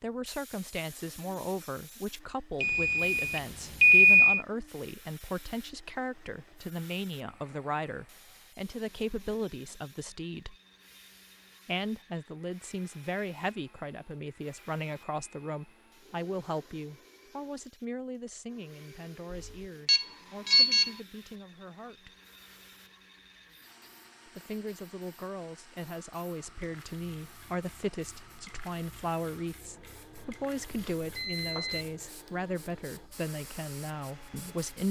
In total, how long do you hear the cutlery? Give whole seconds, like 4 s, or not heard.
not heard.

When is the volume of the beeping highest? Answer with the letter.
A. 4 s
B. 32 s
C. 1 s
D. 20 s
A.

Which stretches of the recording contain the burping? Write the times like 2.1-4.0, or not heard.
not heard.